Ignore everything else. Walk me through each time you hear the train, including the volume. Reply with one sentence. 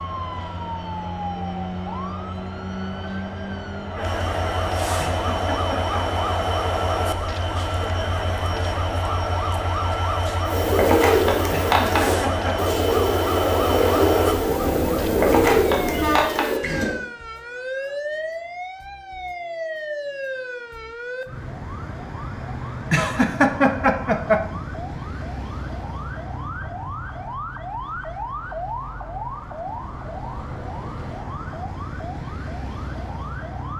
The train can be heard from 0.0 to 16.3 s, getting louder.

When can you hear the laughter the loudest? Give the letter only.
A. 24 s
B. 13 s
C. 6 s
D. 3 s
A.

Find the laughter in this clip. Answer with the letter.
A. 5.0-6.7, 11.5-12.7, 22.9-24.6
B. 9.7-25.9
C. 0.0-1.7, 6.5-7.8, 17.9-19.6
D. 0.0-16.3
A.